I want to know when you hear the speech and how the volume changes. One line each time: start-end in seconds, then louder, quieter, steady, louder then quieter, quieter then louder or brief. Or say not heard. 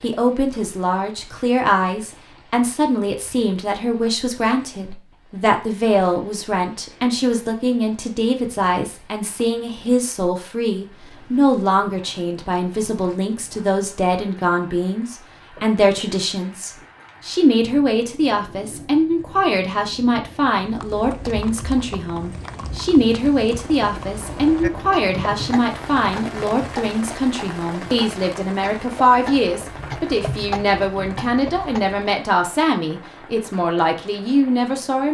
0.0-35.1 steady.